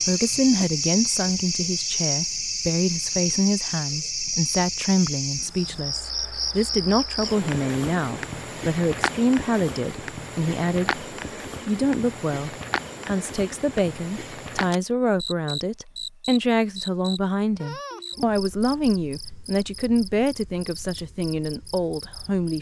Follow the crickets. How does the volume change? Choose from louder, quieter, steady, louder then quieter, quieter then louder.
quieter.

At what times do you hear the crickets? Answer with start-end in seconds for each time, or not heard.
0.0-22.5.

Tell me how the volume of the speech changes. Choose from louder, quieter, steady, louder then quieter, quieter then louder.
steady.